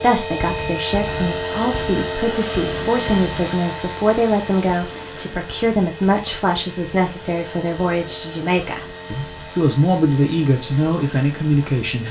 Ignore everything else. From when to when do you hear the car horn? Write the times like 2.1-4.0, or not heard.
not heard.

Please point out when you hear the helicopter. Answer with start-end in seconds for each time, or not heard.
0.0-12.0.